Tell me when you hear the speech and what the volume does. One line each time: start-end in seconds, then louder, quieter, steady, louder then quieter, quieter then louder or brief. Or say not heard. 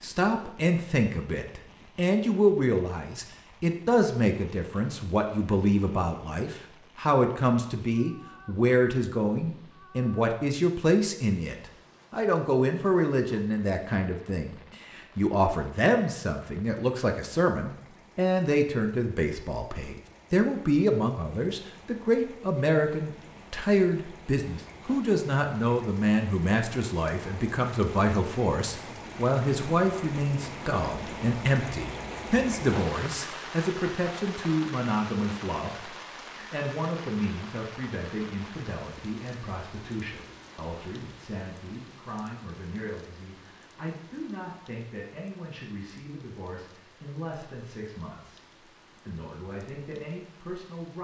0.0-50.9 quieter.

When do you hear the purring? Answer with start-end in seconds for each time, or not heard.
not heard.